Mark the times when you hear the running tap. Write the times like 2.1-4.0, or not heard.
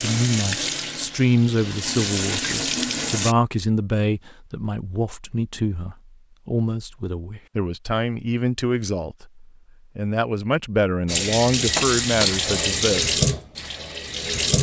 0.0-3.4, 11.1-14.5.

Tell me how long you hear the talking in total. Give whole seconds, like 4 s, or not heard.
13 s.